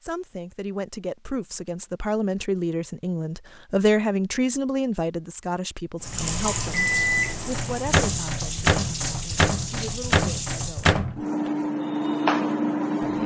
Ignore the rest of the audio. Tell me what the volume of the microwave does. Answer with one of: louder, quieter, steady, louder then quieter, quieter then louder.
steady.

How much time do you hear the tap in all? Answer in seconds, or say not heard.
5 s.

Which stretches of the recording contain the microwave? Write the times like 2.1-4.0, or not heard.
6.7-13.2.